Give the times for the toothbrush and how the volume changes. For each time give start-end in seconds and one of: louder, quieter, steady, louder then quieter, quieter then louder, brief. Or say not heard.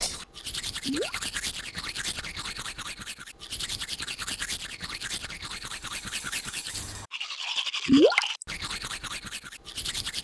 0.0-10.1 steady.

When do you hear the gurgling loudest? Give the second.
8 s.